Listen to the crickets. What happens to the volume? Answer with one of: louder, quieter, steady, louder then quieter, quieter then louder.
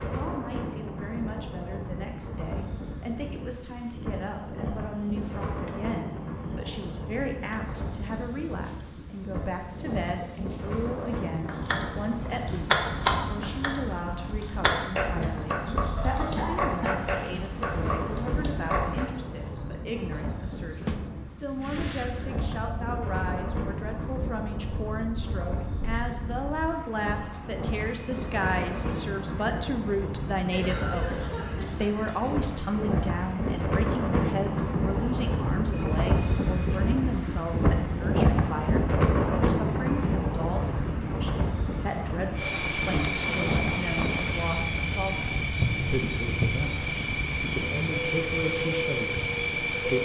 louder.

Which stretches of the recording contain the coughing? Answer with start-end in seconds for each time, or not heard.
15.9-17.1, 30.5-32.1.